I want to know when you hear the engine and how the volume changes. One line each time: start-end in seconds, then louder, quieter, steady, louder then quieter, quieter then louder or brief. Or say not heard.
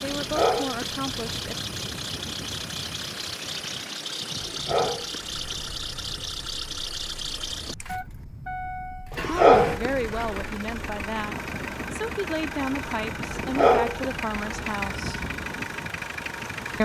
0.0-16.7 steady.